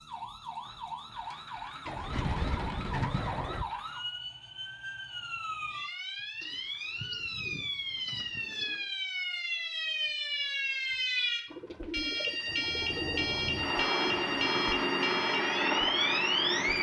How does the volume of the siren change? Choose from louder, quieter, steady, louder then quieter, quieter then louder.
louder.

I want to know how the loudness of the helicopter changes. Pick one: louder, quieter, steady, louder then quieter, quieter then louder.
louder.